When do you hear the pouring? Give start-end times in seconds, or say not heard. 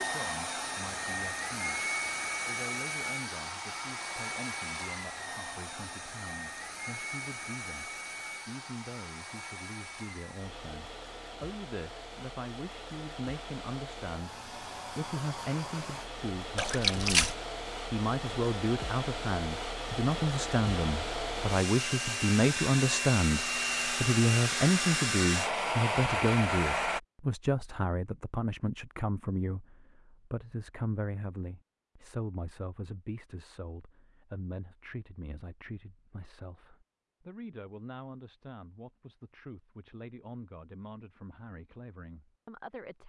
16.6-17.4.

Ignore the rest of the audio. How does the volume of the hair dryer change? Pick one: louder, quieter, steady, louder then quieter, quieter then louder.
quieter then louder.